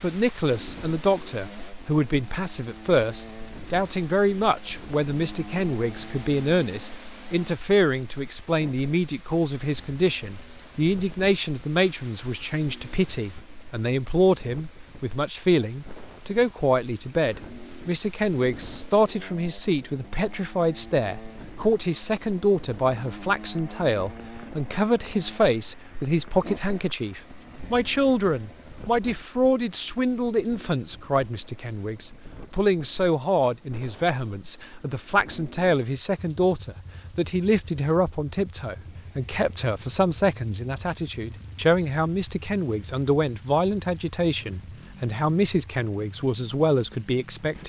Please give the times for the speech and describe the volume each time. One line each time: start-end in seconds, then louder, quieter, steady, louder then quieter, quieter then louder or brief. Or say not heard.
0.0-47.6 steady.